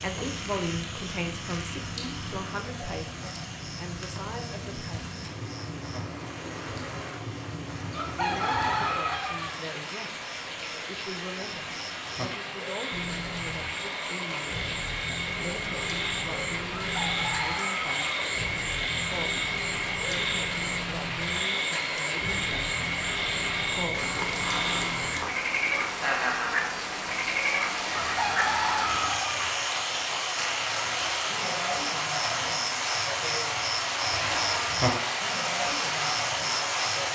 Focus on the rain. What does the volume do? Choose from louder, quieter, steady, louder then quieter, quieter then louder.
louder.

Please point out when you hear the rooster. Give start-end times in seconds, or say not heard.
7.9-9.6, 16.9-18.1, 27.9-29.6.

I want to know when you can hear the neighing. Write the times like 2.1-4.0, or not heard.
not heard.